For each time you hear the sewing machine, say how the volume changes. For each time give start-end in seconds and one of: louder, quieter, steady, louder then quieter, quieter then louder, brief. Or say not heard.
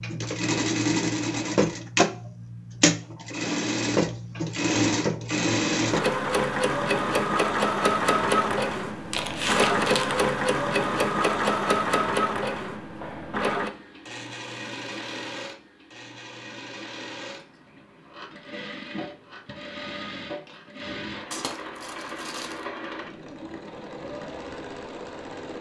0.0-25.5 quieter.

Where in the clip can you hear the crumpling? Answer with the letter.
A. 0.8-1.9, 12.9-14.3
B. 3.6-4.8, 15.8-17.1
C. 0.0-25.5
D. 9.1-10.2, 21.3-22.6
D.